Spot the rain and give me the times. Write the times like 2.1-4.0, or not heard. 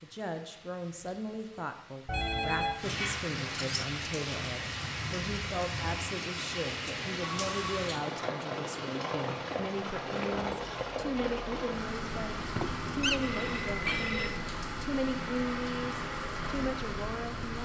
0.0-17.5.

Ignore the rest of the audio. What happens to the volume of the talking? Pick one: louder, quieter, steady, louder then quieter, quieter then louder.
steady.